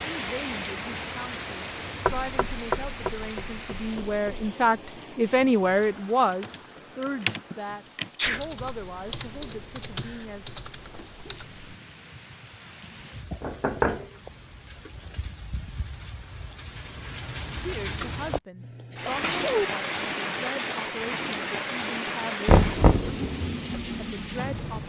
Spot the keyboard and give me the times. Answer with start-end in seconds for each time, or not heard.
6.2-11.8.